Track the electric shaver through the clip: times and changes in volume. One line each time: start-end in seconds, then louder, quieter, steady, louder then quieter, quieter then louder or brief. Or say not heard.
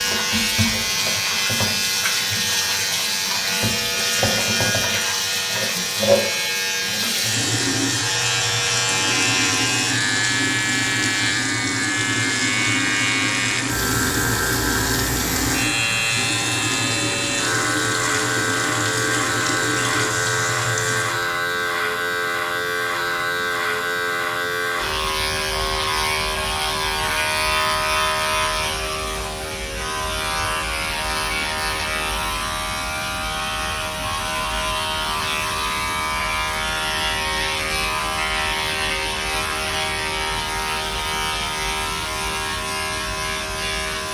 0.0-44.1 steady.